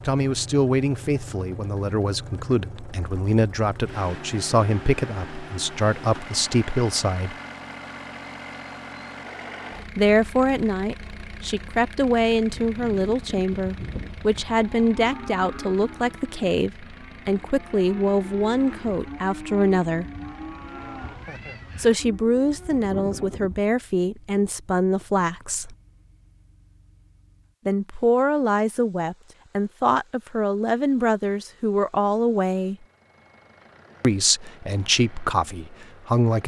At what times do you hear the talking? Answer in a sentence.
The talking can be heard from 0.1 to 7.3 s, from 9.9 to 20.1 s, from 21.8 to 25.8 s, from 27.6 to 32.8 s and from 34.0 to 36.4 s.